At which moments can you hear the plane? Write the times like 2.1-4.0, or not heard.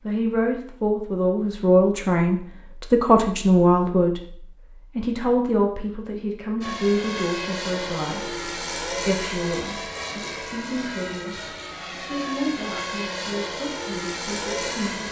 6.6-15.0.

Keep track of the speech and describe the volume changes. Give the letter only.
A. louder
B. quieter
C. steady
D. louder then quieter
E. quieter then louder
B.